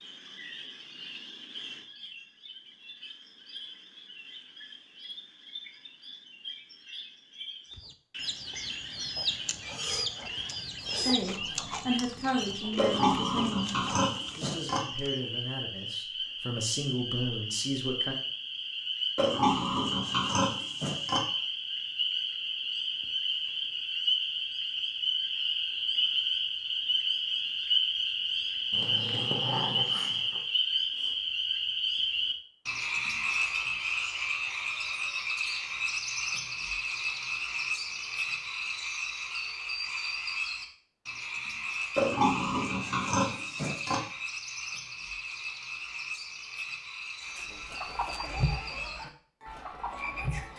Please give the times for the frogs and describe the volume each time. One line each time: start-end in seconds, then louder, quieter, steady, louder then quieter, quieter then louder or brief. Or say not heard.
0.0-50.5 louder then quieter.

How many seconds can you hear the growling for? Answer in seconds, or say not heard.
2 s.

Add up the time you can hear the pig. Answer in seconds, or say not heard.
6 s.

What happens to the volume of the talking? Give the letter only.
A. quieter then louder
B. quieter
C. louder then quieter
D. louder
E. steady
A.